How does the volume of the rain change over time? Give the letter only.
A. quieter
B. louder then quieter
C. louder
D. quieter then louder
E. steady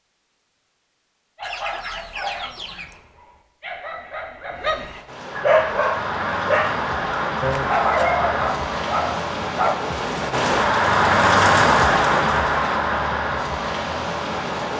B.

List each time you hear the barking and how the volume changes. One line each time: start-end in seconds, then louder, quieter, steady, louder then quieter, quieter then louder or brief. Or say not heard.
1.4-9.8 louder.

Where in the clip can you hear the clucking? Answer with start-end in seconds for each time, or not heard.
1.4-3.0.